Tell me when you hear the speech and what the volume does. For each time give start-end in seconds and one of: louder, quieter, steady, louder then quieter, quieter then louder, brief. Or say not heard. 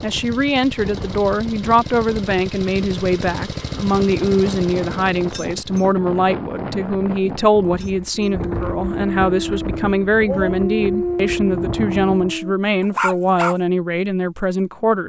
0.0-15.0 steady.